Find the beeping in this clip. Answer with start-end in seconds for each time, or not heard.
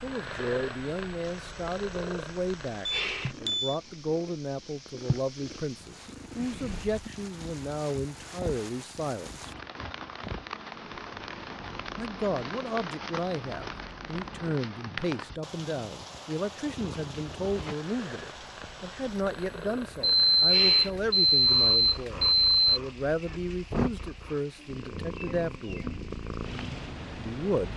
2.9-3.8, 20.0-22.8.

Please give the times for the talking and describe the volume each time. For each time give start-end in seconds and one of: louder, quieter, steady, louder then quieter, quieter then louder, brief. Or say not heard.
0.0-9.5 steady
11.9-25.9 steady
27.1-27.7 brief.